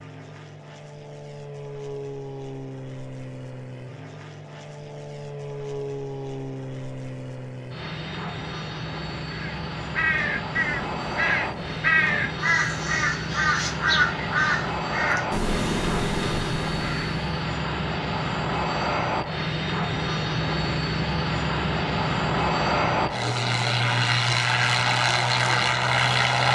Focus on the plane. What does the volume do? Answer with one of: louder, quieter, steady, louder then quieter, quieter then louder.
louder.